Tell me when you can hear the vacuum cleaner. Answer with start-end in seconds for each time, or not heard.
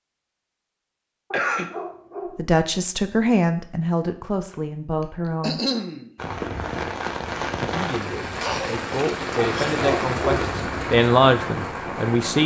not heard.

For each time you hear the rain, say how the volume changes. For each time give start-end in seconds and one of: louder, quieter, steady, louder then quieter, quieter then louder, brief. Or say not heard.
6.2-12.4 steady.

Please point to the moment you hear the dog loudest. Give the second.
10 s.